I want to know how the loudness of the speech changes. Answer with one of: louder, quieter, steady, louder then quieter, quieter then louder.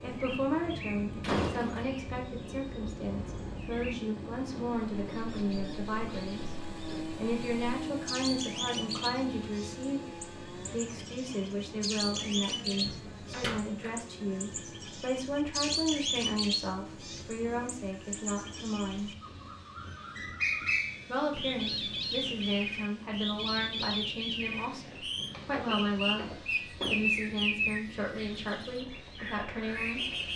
steady.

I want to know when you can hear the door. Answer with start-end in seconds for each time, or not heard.
1.2-1.9, 12.8-13.9, 24.9-27.2.